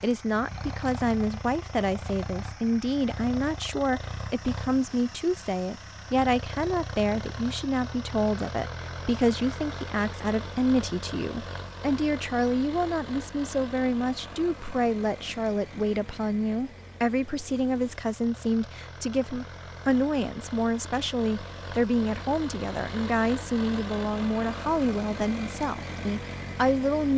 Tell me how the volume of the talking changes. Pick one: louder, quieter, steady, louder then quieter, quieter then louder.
steady.